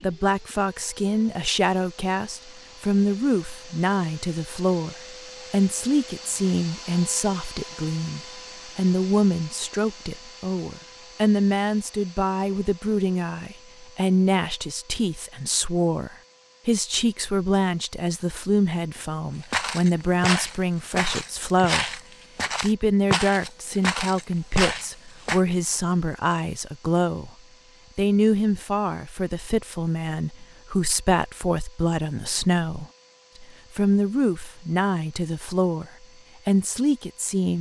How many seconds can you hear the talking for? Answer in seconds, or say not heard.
36 s.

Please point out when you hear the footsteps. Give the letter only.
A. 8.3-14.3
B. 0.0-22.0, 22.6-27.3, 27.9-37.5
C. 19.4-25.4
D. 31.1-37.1
C.